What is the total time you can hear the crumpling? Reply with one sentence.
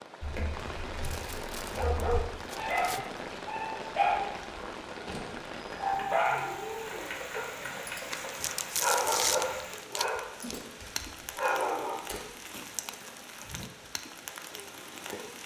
You can hear the crumpling for 4 seconds altogether.